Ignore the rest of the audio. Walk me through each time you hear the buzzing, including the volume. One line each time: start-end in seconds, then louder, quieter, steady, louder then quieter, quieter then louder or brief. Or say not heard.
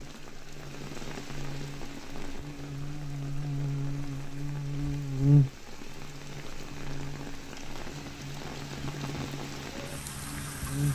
0.0-10.9 louder then quieter.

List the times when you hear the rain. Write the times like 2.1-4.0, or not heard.
0.0-10.9.